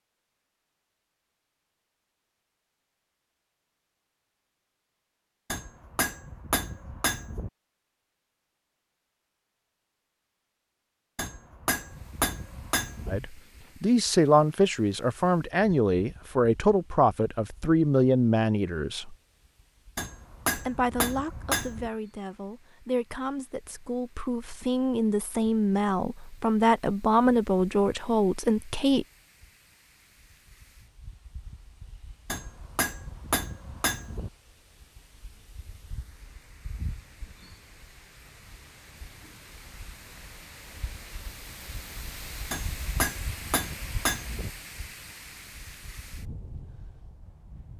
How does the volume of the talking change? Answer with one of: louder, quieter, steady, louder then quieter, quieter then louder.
quieter then louder.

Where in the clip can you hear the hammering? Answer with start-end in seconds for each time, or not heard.
5.5-7.5, 11.2-13.2, 19.9-21.9, 32.2-34.3, 42.5-44.5.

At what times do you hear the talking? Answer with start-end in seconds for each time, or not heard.
13.1-19.1, 20.6-29.1.